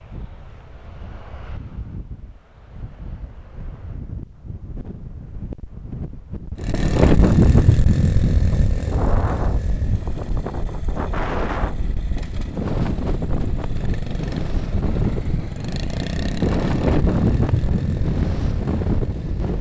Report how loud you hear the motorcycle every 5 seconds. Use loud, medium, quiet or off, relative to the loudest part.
off, loud, quiet, medium.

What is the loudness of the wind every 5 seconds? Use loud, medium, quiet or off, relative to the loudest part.
quiet, medium, loud, loud.